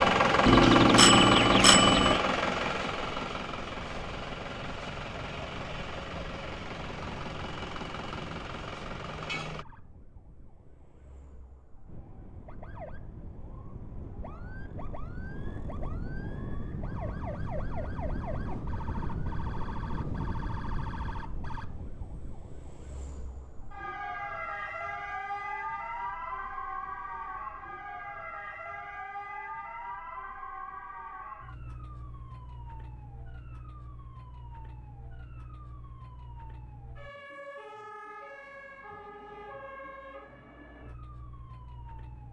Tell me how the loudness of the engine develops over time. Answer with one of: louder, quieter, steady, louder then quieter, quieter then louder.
quieter.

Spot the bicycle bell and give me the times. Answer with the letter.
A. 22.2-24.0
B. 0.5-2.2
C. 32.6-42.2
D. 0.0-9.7
B.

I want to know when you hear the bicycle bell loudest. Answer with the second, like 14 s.
1 s.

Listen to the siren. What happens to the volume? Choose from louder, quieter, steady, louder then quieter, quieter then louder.
louder then quieter.